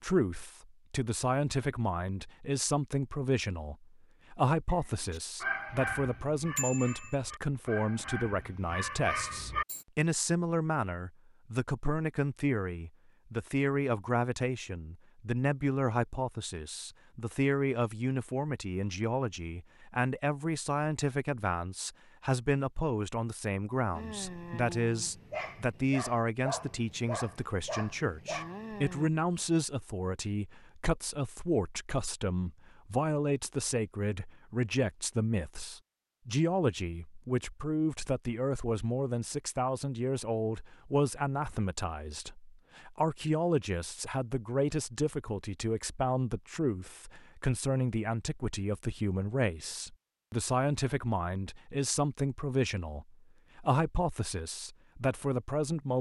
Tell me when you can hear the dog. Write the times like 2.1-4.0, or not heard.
4.7-9.8, 23.9-29.1.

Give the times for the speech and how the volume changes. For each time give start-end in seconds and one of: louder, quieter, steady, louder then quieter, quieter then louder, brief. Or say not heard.
0.0-55.9 steady.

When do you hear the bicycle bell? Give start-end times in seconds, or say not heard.
6.5-7.2.